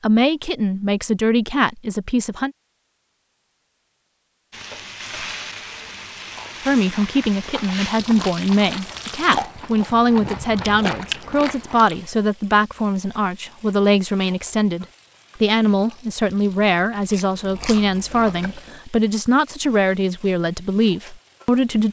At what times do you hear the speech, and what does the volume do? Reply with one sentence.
You can hear the speech briefly from 0.0 to 2.5 s; and from 6.6 to 21.8 s, at a steady volume.